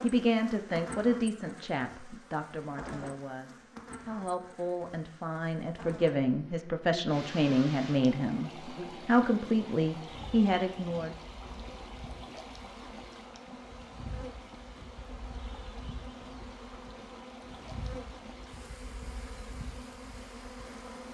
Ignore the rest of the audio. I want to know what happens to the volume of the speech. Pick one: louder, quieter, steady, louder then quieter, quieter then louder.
quieter then louder.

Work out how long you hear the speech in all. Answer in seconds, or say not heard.
11 s.